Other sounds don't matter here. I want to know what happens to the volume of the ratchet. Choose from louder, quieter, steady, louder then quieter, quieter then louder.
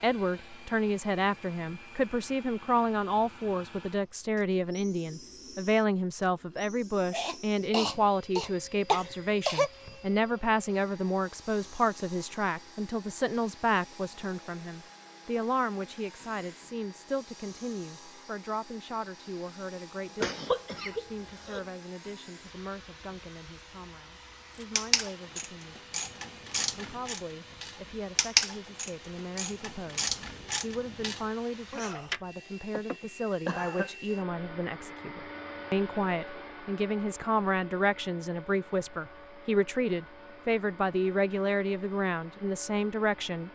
louder then quieter.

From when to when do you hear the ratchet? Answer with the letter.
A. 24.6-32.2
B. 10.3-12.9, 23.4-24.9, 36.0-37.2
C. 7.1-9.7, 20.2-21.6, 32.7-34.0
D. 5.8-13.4
A.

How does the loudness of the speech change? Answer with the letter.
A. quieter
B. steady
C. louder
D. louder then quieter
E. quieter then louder
E.